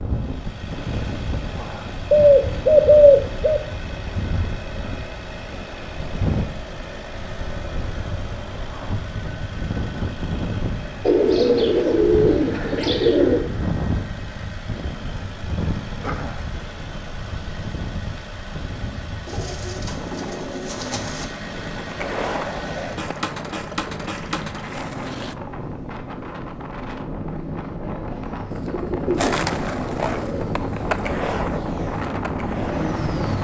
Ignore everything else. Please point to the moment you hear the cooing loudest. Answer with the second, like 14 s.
3 s.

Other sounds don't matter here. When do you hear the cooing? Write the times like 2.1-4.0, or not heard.
2.1-3.6, 11.1-13.4, 19.2-21.2, 28.5-31.2.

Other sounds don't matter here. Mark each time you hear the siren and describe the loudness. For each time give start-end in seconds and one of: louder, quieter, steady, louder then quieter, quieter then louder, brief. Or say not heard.
not heard.